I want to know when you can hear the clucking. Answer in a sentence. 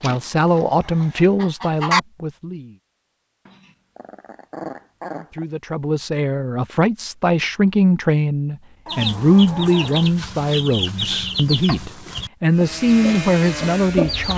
The clucking can be heard from 0.0 to 2.0 s and from 8.8 to 14.3 s.